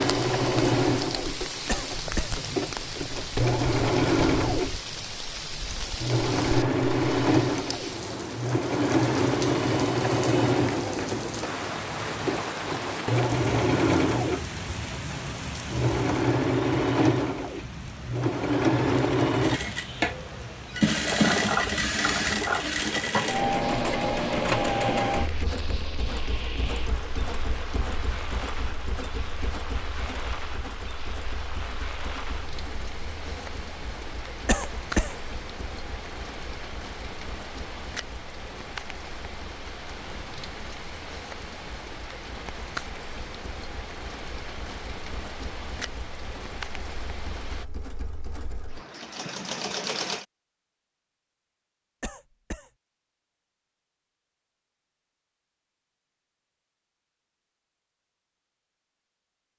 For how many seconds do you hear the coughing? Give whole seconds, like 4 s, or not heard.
2 s.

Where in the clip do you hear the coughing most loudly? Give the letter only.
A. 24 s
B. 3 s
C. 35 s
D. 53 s
C.